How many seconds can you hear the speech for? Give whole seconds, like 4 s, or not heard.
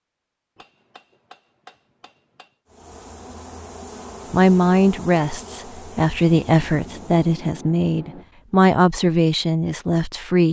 6 s.